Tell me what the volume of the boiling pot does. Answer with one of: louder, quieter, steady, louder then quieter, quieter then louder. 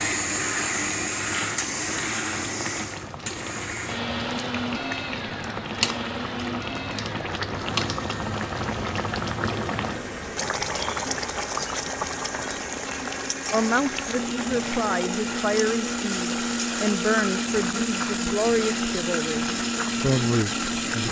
louder then quieter.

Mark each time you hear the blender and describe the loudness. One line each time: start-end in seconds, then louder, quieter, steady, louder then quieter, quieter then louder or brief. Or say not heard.
0.0-21.0 quieter then louder.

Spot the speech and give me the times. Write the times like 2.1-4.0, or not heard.
13.5-21.0.